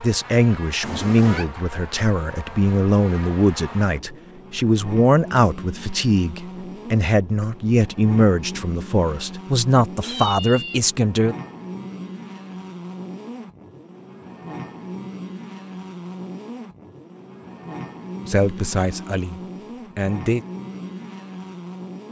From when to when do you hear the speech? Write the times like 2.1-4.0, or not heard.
0.0-11.3, 18.2-20.4.